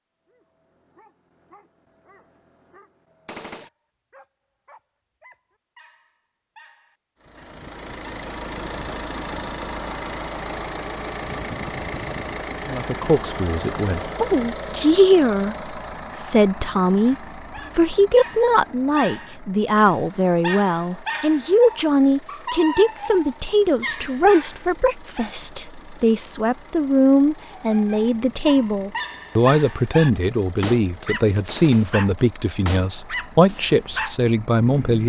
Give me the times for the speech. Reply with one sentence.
The speech can be heard from 12.7 to 35.0 s.